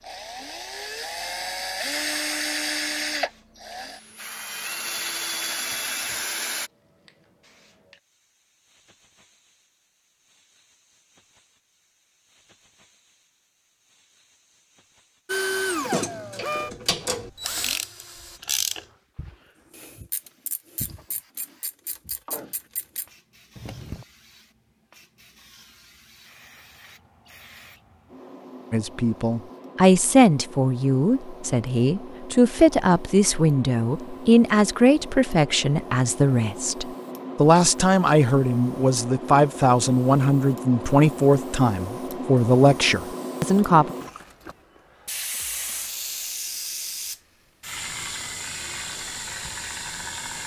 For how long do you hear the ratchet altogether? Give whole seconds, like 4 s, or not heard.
8 s.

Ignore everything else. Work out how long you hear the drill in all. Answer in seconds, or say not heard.
10 s.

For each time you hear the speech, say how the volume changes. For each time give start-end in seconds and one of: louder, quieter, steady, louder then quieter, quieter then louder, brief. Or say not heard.
28.7-44.0 steady.